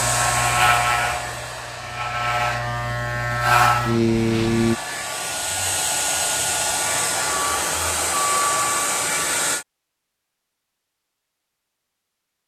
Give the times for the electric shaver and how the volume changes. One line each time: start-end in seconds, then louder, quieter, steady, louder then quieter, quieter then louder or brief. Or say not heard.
0.0-4.8 quieter then louder.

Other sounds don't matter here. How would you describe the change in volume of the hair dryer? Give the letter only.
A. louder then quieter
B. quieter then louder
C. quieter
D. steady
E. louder
B.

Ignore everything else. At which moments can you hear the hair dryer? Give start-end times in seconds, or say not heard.
0.0-9.7.